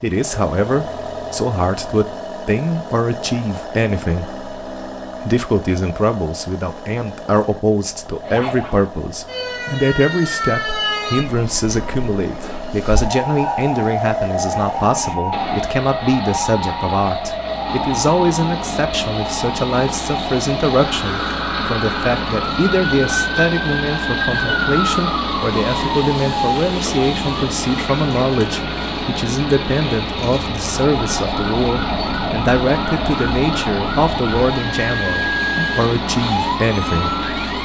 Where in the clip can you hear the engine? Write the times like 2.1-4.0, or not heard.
0.0-37.6.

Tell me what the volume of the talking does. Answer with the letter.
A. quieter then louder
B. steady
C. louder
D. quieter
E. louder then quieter
B.